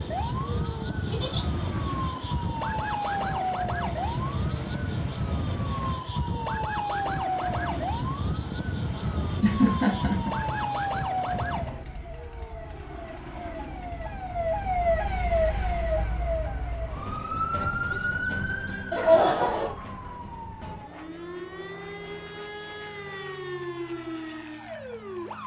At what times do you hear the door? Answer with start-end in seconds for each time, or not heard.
not heard.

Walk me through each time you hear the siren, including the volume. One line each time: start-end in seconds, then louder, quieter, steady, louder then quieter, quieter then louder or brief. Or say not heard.
0.0-25.4 quieter.